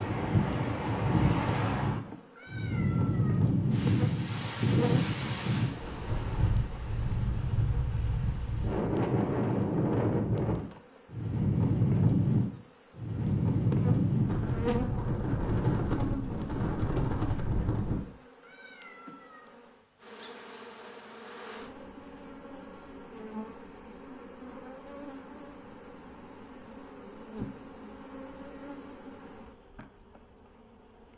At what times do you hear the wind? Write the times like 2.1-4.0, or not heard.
0.0-18.1.